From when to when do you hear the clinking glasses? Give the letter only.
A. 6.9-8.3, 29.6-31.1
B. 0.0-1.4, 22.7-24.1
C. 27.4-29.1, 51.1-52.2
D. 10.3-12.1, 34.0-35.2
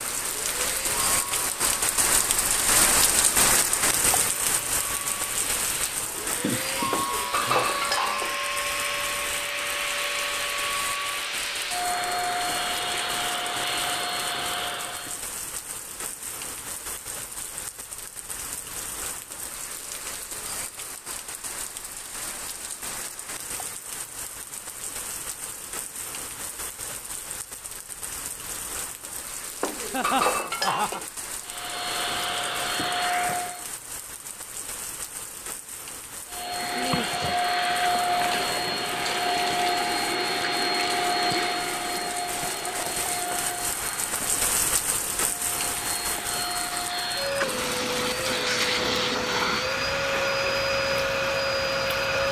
A.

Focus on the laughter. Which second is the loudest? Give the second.
30 s.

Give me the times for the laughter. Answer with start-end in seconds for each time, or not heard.
6.2-7.8, 29.9-31.0.